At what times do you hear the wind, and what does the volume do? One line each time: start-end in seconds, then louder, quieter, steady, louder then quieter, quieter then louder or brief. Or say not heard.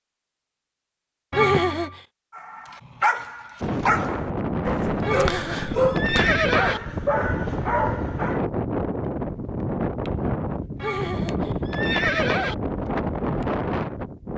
3.6-14.3 steady.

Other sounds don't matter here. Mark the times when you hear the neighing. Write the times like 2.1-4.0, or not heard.
1.3-2.0, 5.0-6.8, 10.8-12.6.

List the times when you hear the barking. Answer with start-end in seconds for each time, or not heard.
2.4-8.4.